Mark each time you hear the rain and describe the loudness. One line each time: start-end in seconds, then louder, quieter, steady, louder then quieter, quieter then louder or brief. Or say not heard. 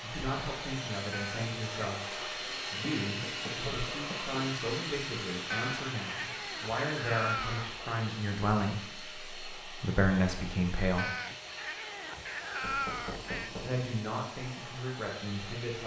not heard.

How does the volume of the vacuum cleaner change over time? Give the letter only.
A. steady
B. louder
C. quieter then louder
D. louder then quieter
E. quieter
E.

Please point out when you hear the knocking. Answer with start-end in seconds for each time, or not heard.
3.0-4.5, 12.6-13.8.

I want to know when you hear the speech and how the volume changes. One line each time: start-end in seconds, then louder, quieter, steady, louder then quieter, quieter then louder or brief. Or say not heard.
0.0-11.1 louder
13.6-15.8 brief.